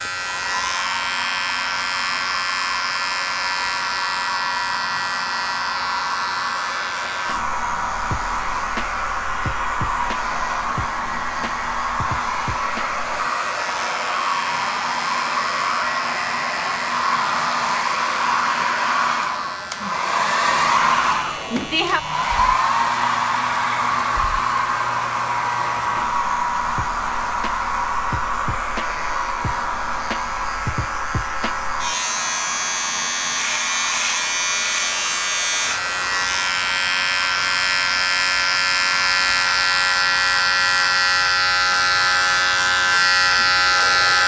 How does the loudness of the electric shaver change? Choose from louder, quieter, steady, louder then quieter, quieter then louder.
quieter then louder.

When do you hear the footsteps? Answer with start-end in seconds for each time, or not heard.
not heard.